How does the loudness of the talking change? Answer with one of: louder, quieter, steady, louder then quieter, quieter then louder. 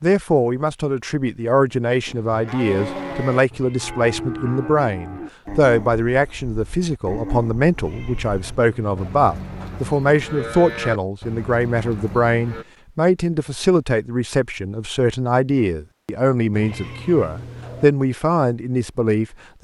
steady.